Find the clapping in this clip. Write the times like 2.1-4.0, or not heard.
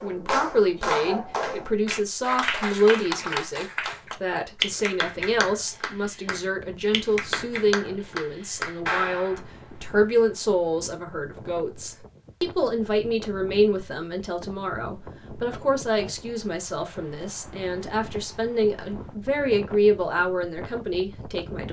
0.0-9.4.